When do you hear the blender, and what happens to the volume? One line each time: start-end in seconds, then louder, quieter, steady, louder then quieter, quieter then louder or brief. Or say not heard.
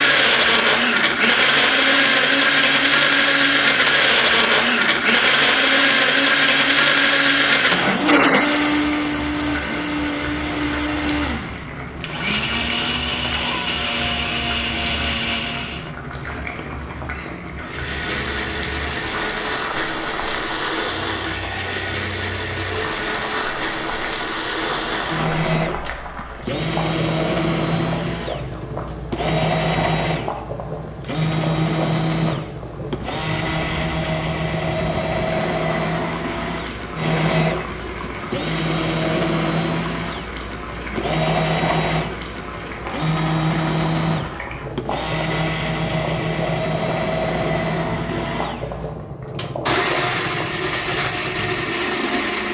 0.0-15.9 quieter
17.6-52.4 steady.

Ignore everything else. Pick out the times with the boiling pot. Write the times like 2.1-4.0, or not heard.
0.0-52.4.